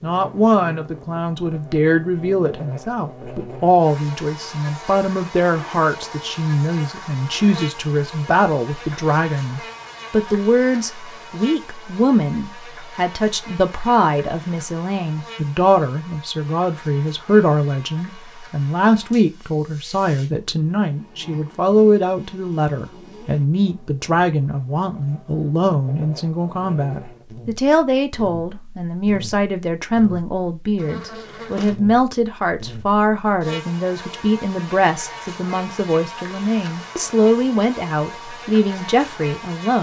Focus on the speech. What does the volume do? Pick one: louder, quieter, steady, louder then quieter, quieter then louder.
steady.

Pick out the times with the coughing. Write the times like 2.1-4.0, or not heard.
not heard.